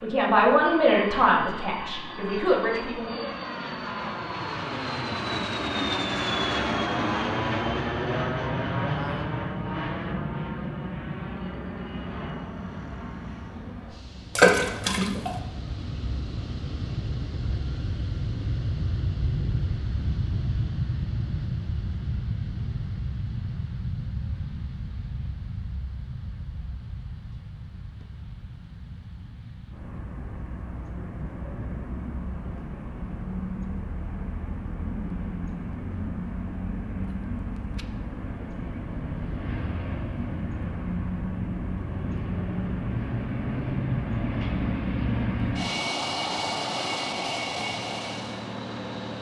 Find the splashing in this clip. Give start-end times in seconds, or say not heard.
14.3-15.3.